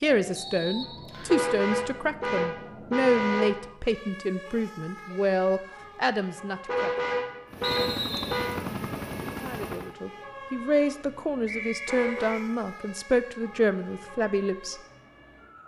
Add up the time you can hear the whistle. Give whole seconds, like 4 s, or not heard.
3 s.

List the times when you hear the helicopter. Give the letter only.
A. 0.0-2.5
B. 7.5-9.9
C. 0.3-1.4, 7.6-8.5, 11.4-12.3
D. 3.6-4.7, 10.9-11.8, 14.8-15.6
B.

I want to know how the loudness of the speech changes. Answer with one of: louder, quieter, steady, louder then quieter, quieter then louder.
steady.